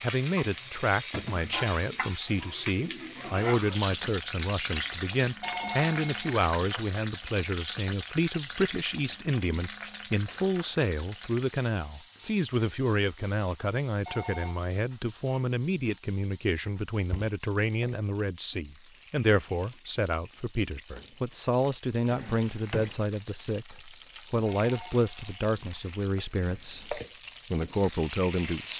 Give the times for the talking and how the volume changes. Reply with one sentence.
The talking can be heard from 0.0 to 28.7 s, at a steady volume.